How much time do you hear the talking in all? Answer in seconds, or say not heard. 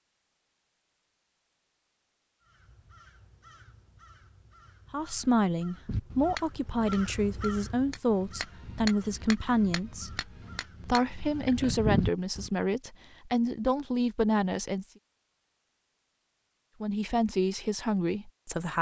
11 s.